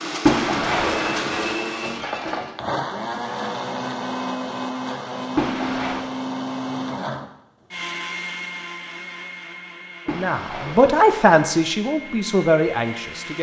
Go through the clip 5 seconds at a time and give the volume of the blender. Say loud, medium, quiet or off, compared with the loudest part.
loud, loud, medium.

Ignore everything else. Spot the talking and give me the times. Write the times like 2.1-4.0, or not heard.
10.1-13.3.